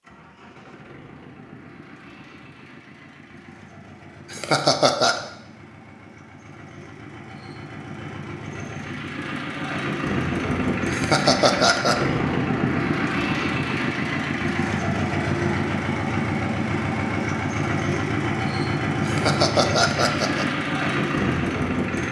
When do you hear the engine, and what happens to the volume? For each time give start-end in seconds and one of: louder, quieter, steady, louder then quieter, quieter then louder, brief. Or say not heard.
0.0-22.0 louder.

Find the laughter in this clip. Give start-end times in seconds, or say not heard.
4.3-5.2, 10.9-11.9, 19.1-20.4.